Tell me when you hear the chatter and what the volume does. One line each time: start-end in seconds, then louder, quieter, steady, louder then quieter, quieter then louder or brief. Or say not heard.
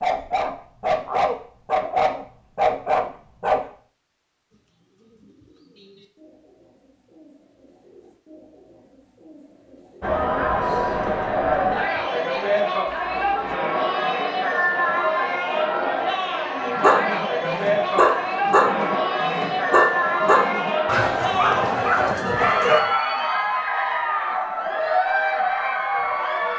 10.0-26.5 steady.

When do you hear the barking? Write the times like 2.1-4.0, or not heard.
0.0-3.6, 16.8-23.0.